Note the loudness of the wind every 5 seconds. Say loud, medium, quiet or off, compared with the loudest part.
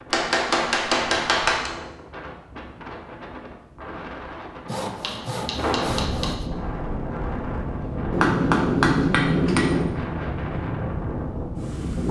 medium, loud, loud.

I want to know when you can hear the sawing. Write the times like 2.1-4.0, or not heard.
4.7-6.5.